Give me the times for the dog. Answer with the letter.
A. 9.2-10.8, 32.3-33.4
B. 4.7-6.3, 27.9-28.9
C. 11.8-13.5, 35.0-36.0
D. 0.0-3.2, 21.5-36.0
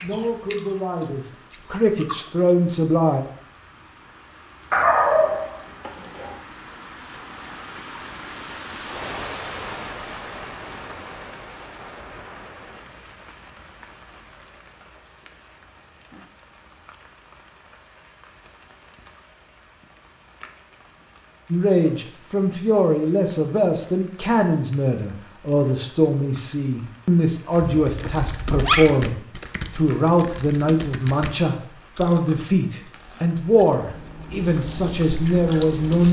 B.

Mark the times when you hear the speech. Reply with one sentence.
You can hear the speech from 0.0 to 3.2 s and from 21.5 to 36.0 s.